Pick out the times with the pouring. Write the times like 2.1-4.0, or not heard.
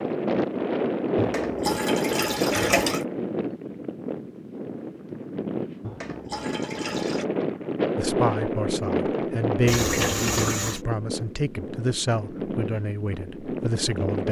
1.1-3.0, 5.8-7.2, 9.7-10.8.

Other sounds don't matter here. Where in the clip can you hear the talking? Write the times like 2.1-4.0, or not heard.
8.0-14.2.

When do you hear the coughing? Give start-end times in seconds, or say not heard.
not heard.